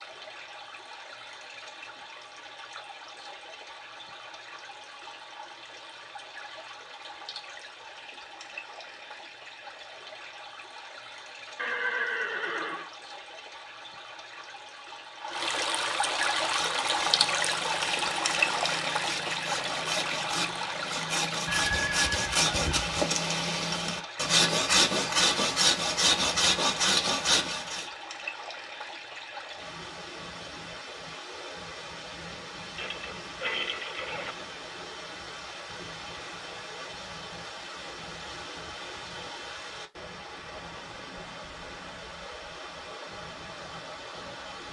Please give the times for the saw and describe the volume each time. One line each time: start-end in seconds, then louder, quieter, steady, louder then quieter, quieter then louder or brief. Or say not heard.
16.4-27.9 louder.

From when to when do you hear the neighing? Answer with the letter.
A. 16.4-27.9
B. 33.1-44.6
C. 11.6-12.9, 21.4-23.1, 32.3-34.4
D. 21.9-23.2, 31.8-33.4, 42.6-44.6
C.